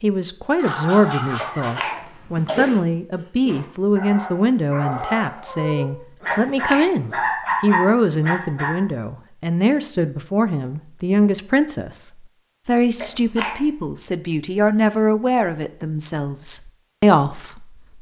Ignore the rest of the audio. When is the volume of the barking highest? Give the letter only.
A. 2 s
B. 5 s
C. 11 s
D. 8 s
D.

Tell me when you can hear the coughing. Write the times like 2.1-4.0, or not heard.
1.4-2.8, 6.3-6.9, 13.0-13.6.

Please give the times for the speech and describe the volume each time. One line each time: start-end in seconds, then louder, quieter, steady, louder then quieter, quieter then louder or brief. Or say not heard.
0.0-17.8 steady.